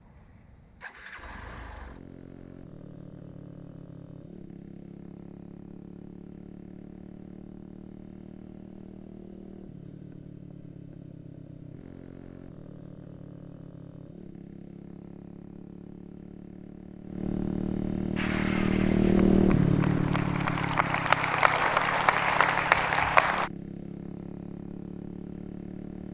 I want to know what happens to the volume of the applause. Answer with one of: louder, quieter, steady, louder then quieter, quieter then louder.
louder.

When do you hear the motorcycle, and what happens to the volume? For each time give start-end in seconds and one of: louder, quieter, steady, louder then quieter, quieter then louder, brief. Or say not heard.
0.0-26.0 louder then quieter.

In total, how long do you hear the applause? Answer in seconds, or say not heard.
5 s.